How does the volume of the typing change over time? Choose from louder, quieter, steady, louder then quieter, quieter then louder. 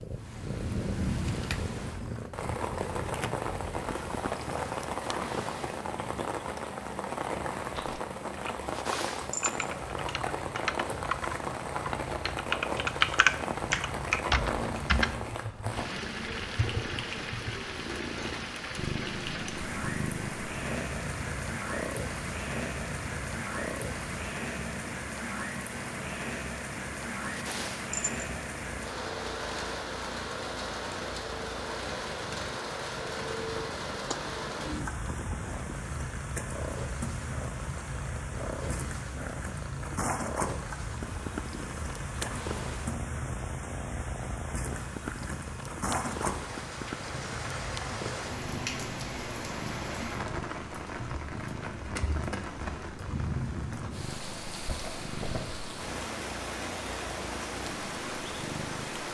louder then quieter.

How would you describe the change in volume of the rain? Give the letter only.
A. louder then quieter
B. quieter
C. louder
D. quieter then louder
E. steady
E.